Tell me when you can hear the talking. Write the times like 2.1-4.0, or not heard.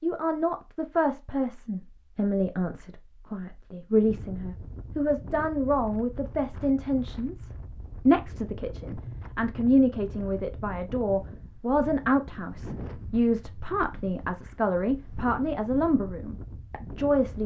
0.0-17.4.